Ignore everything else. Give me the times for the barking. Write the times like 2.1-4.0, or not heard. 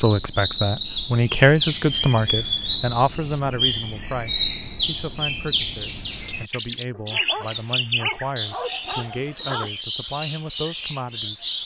6.9-9.7.